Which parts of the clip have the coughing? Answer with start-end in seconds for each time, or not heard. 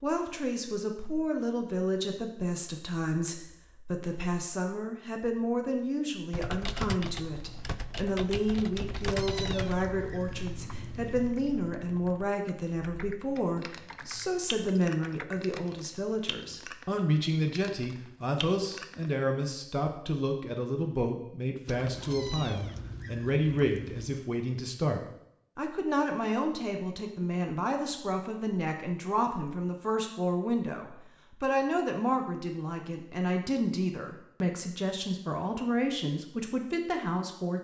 not heard.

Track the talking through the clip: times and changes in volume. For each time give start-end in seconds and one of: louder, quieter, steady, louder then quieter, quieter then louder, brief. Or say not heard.
0.0-37.5 steady.